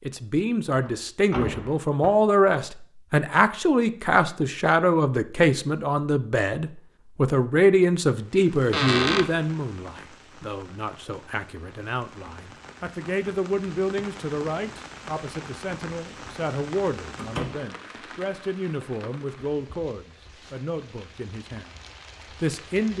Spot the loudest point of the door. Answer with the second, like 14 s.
9 s.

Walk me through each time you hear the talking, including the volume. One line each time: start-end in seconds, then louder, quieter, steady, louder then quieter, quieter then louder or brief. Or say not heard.
0.0-21.8 quieter
22.4-22.9 brief.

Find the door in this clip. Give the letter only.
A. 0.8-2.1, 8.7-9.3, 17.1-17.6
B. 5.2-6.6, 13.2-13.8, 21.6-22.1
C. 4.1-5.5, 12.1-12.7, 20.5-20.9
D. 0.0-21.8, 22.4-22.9
A.